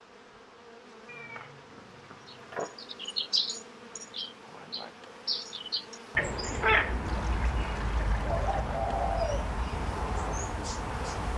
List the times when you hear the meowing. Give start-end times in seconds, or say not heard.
1.1-2.8, 6.2-7.0.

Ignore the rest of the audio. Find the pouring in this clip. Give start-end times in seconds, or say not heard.
7.0-8.7.